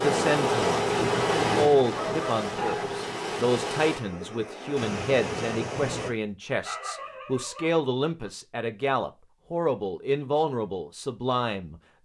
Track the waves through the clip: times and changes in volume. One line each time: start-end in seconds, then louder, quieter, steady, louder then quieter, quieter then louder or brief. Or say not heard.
0.0-6.1 quieter.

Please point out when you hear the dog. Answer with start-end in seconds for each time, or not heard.
2.0-3.0, 6.4-8.3.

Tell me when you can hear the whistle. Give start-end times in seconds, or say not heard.
not heard.